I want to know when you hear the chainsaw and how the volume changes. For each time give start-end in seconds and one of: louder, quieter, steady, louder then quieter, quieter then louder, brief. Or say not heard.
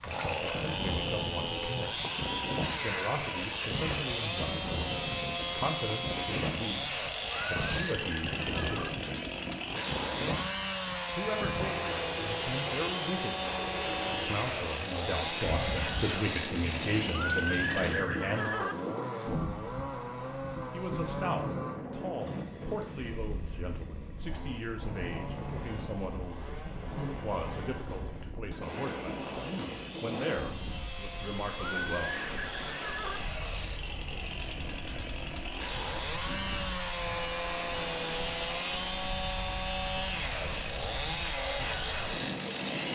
0.0-42.9 quieter then louder.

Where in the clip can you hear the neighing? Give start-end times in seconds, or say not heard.
7.3-8.9, 17.1-18.8, 31.6-33.2.